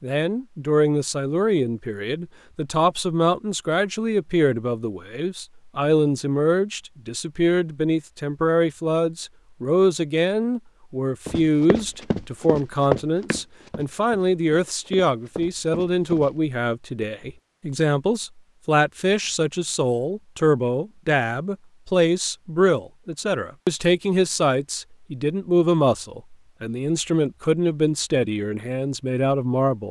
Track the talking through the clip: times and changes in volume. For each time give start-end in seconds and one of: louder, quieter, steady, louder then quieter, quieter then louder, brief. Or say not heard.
0.0-29.8 steady.